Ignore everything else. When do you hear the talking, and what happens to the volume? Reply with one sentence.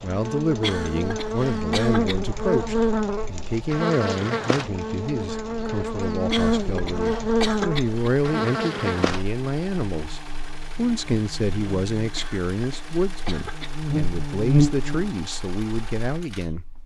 The talking can be heard from 0.0 to 16.6 s, at a steady volume.